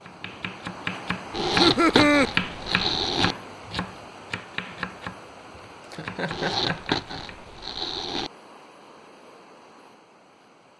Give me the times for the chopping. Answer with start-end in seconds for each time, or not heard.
0.1-7.4.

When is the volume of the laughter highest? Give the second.
2 s.